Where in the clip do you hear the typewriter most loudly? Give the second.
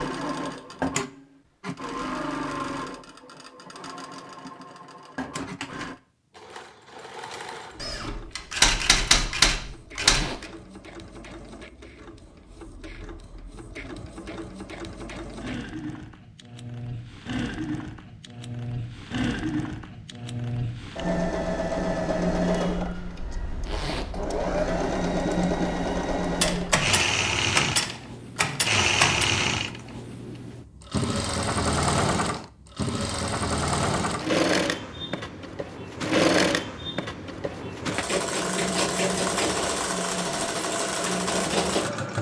9 s.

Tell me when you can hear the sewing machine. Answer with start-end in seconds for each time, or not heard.
0.0-42.1.